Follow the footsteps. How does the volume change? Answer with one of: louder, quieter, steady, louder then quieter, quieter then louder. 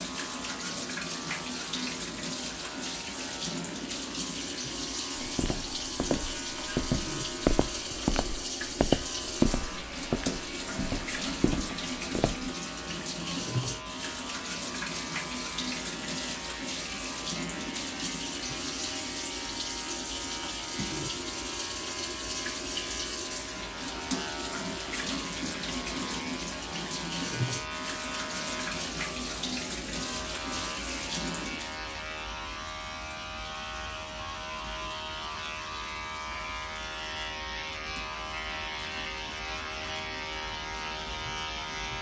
louder then quieter.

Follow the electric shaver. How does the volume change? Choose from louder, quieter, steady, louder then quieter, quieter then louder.
louder.